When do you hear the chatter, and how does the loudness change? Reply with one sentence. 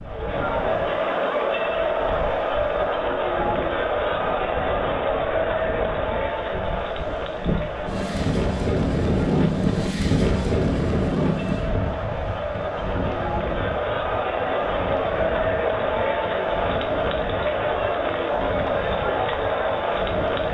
The chatter can be heard from 0.0 to 20.4 s, getting quieter then louder.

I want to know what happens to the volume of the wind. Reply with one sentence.
The loudness of the wind goes up, then down.